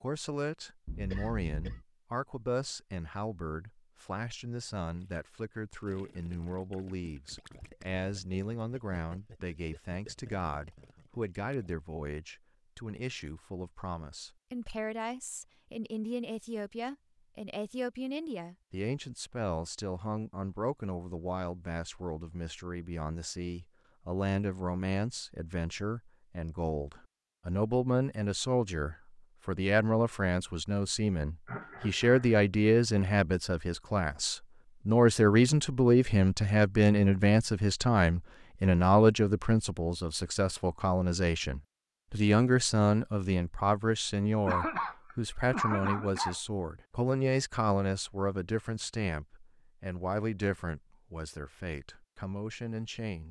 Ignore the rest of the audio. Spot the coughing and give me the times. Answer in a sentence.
The coughing can be heard from 0.8 to 1.9 s, from 31.4 to 32.2 s and from 44.5 to 46.4 s.